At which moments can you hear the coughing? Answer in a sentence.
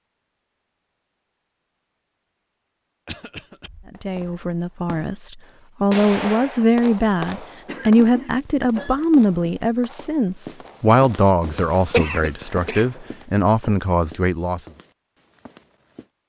The coughing can be heard from 3.0 to 3.7 s, from 7.7 to 9.1 s and from 11.9 to 13.0 s.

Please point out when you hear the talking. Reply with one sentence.
You can hear the talking from 4.0 to 14.6 s.